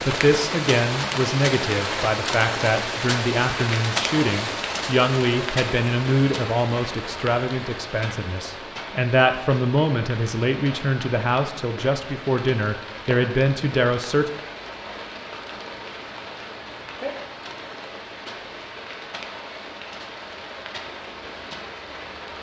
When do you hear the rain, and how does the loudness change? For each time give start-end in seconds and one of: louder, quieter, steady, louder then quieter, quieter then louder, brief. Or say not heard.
0.0-22.3 quieter.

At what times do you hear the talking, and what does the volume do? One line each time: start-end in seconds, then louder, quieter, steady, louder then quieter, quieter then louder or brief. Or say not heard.
0.0-14.3 steady.